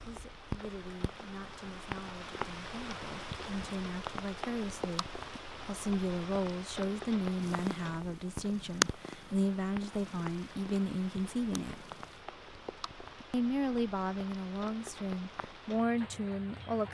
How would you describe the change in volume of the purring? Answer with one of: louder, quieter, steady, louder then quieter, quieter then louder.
louder then quieter.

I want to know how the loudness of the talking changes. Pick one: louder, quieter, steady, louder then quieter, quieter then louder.
louder.